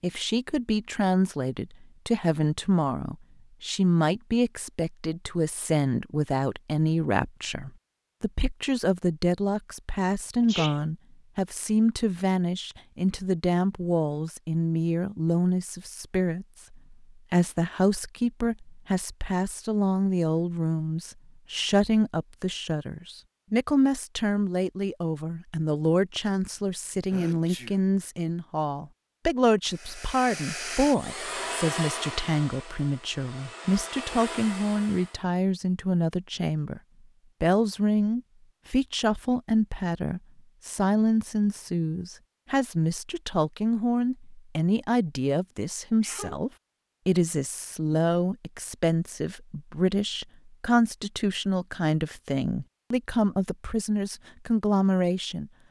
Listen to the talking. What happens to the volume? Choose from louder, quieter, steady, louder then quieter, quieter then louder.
steady.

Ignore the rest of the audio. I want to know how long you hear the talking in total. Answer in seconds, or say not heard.
55 s.